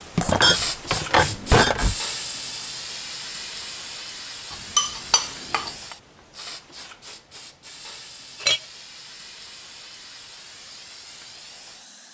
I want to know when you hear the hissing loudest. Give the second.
1 s.